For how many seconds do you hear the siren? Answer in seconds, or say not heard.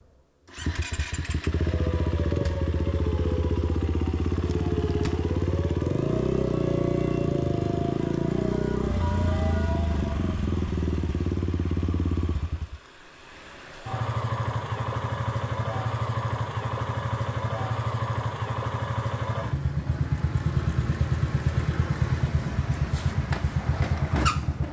9 s.